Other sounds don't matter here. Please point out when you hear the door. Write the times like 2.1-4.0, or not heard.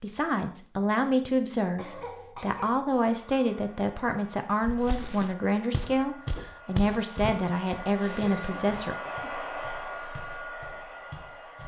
not heard.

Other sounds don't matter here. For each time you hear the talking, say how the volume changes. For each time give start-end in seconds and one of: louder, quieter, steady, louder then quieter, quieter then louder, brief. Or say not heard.
0.0-8.9 steady.